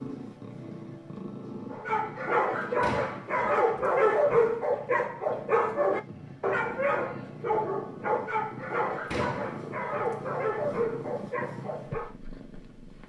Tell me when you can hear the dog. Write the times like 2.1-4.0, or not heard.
1.7-12.2.